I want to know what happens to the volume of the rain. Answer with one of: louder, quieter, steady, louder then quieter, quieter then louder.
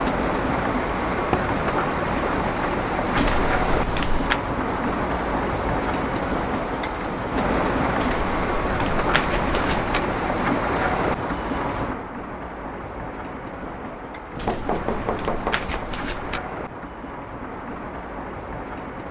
quieter.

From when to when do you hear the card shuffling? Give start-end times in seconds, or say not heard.
3.1-4.4, 8.0-10.0, 14.3-16.4.